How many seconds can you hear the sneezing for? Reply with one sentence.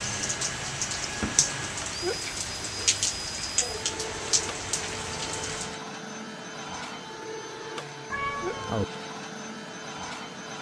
The sneezing can be heard for 2 seconds in total.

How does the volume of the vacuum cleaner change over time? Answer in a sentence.
The loudness of the vacuum cleaner stays about the same.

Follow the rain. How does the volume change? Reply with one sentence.
The loudness of the rain stays about the same.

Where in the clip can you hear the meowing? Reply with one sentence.
The meowing can be heard from 8.1 to 8.8 s.